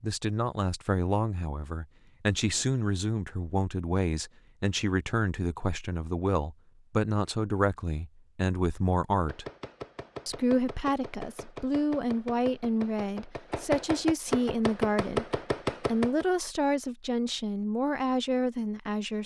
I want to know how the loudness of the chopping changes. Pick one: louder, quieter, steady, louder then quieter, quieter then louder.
louder.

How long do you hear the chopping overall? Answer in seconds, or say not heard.
7 s.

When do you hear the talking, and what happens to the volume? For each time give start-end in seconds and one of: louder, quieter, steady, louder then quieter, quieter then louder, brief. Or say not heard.
0.0-9.4 steady
10.2-19.2 steady.